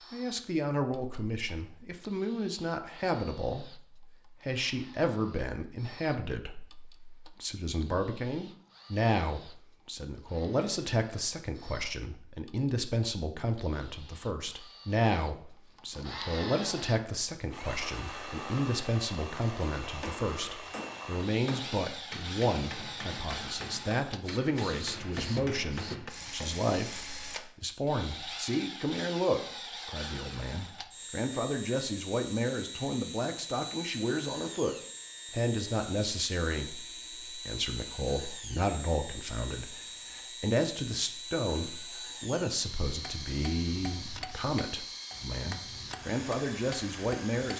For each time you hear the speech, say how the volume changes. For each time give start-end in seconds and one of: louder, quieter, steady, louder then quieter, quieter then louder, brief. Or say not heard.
0.1-47.5 steady.